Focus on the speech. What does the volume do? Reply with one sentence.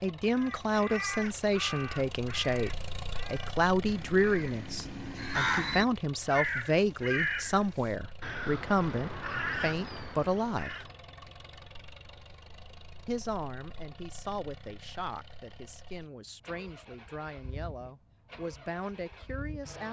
The loudness of the speech goes down.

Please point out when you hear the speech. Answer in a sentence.
You can hear the speech from 0.0 to 10.9 s and from 13.1 to 19.8 s.